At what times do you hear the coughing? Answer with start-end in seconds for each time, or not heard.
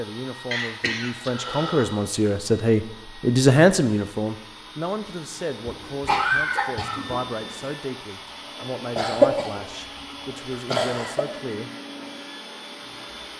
0.5-2.0, 5.7-7.2, 8.9-9.5, 10.7-11.2.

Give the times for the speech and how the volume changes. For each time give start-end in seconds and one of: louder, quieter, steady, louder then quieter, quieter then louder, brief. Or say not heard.
0.0-11.7 louder then quieter.